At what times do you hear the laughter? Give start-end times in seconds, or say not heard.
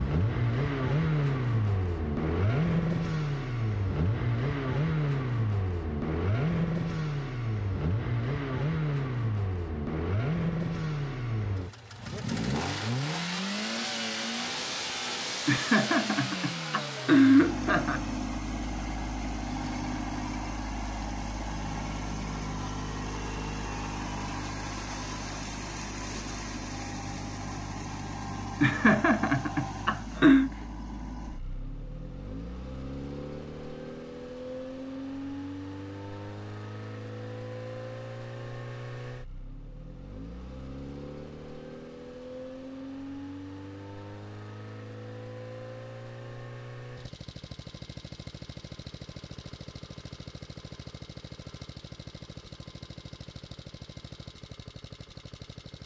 15.4-18.0, 28.6-30.5.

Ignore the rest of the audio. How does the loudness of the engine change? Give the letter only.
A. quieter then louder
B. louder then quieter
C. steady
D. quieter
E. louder
D.